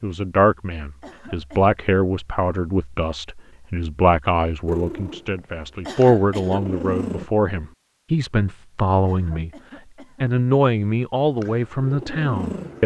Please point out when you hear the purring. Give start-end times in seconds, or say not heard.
4.7-7.3, 11.3-12.8.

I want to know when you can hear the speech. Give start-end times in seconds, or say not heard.
0.0-9.5, 10.2-12.8.